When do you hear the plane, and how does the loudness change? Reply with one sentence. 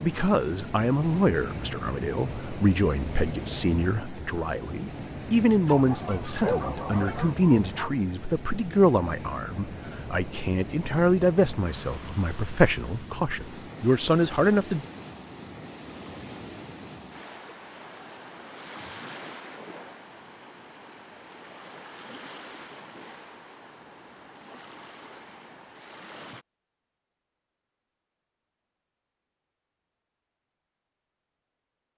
You can't hear the plane here.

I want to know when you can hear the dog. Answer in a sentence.
The dog can be heard from 5.7 to 7.9 s.